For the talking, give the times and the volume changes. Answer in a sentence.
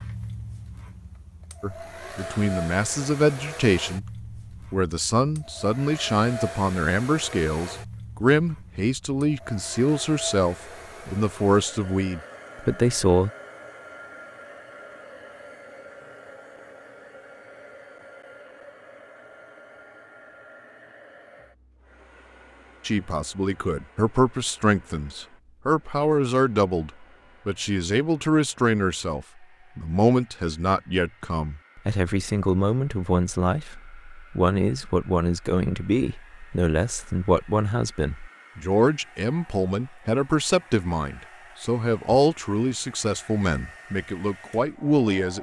The talking can be heard briefly from 1.6 to 4.0 s; from 4.7 to 13.3 s, at a steady volume; and from 22.9 to 45.3 s, at a steady volume.